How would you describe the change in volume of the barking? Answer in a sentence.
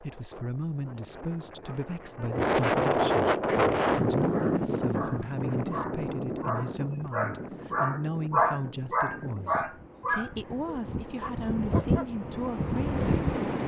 The loudness of the barking goes up, then down.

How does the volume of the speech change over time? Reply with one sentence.
The loudness of the speech stays about the same.